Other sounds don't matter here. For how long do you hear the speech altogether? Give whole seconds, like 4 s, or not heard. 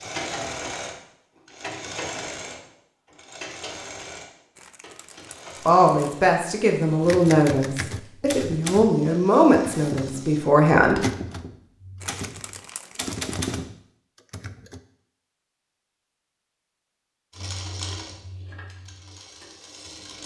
5 s.